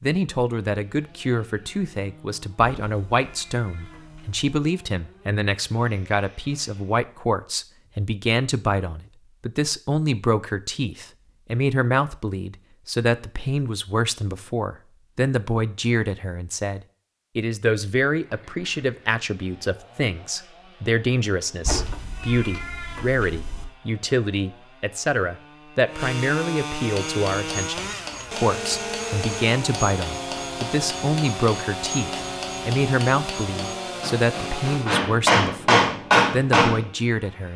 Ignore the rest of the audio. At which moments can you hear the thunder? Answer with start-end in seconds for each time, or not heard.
not heard.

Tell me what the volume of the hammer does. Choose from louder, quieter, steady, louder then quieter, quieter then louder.
louder.